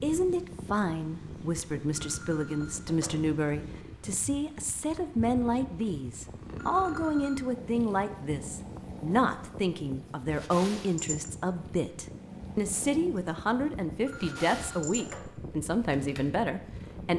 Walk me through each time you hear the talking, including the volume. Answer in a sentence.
The talking can be heard from 0.0 to 17.1 s, at a steady volume.